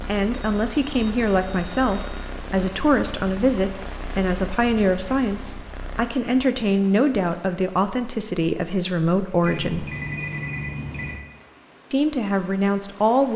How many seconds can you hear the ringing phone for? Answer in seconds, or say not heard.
5 s.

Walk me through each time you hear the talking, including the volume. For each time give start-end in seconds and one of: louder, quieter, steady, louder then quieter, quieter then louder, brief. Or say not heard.
0.0-9.9 steady
11.9-13.3 brief.